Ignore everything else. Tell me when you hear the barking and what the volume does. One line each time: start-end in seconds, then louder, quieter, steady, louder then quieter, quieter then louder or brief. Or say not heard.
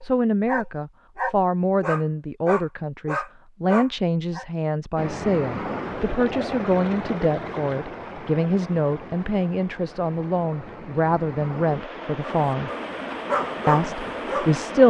0.0-4.5 steady
12.2-14.7 brief.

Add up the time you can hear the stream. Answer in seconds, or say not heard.
10 s.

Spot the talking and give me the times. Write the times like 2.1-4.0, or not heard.
0.0-12.7, 13.7-14.8.